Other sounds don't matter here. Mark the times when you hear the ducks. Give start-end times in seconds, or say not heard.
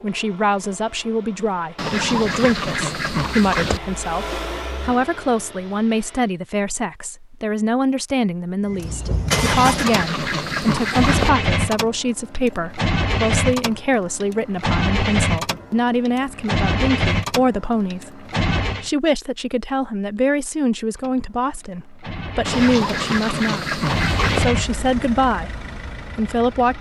1.8-3.8, 9.3-11.3, 22.4-24.4.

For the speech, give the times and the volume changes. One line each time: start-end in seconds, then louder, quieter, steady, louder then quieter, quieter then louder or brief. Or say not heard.
0.0-23.8 steady
24.4-25.5 brief
26.1-26.7 brief.